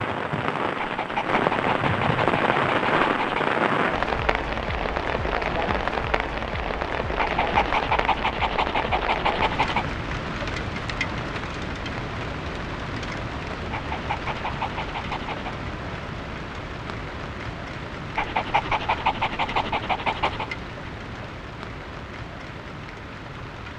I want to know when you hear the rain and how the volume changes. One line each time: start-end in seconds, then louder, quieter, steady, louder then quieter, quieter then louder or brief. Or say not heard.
0.0-23.7 quieter.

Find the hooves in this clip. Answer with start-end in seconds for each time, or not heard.
not heard.